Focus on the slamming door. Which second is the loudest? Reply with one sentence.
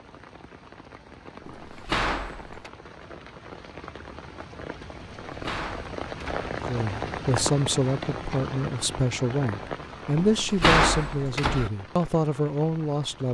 The loudest moment of the slamming door is at 11 seconds.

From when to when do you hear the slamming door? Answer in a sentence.
The slamming door can be heard from 1.4 to 2.7 s, from 5.2 to 6.5 s and from 10.2 to 11.7 s.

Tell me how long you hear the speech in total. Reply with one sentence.
You can hear the speech for 7 seconds altogether.